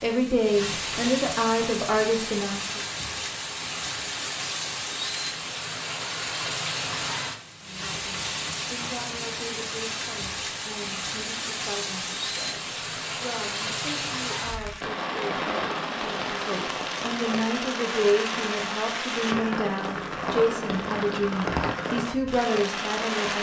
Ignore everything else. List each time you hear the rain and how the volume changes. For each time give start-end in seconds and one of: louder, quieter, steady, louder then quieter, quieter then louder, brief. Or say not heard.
0.0-23.3 steady.